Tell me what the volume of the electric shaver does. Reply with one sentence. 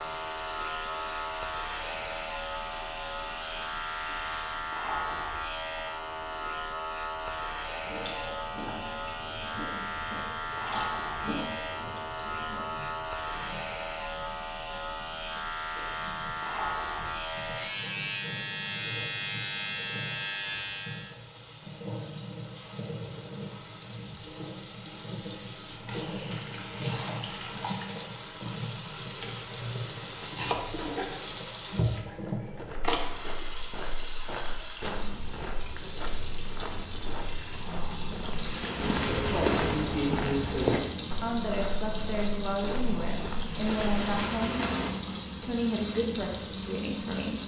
The volume of the electric shaver stays about the same.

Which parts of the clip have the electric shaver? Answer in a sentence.
You can hear the electric shaver from 0.0 to 21.1 s.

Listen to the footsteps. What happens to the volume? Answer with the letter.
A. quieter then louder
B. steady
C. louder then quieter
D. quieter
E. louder
C.